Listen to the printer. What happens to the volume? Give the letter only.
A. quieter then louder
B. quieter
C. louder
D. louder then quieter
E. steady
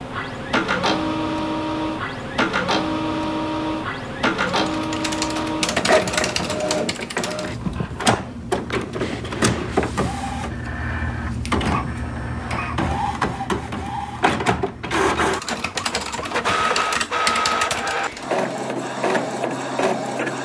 E.